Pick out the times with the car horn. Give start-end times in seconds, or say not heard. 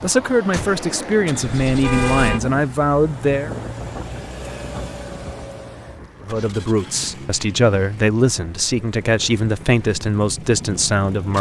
1.4-2.4.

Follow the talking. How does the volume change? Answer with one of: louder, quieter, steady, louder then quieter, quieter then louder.
steady.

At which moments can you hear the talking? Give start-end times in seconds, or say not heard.
0.0-3.5, 6.2-11.3.